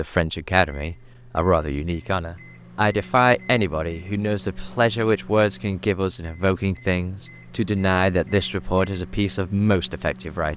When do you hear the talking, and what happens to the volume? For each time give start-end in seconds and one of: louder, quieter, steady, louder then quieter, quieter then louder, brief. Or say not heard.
0.0-10.5 steady.